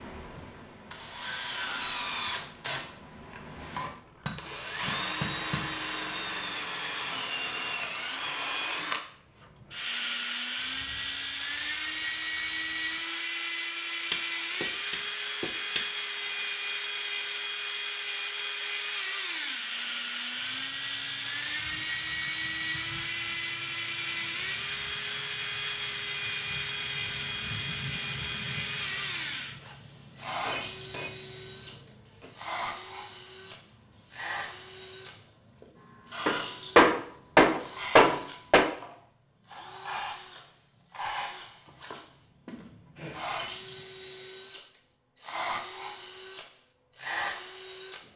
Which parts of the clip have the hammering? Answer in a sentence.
You can hear the hammering from 4.2 to 5.7 s, from 14.1 to 15.8 s, from 30.4 to 32.3 s and from 36.2 to 38.7 s.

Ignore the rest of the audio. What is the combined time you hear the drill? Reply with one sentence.
You can hear the drill for 48 seconds altogether.